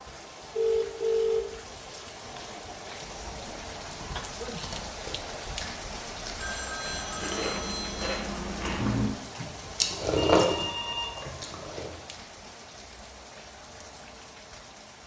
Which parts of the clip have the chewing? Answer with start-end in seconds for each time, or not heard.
3.0-12.0.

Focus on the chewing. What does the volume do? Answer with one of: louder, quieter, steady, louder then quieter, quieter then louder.
louder.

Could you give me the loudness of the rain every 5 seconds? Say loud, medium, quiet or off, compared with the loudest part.
loud, loud, medium.